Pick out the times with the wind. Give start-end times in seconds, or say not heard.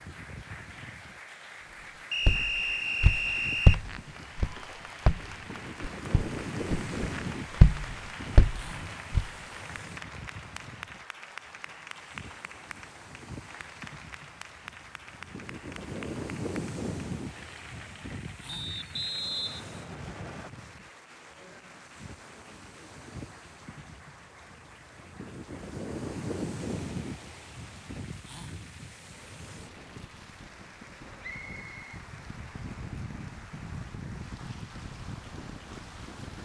0.0-36.4.